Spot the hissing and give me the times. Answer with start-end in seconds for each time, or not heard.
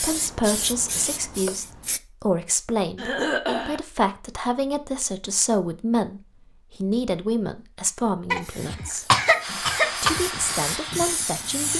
0.0-2.0, 8.3-11.7.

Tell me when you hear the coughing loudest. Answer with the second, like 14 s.
9 s.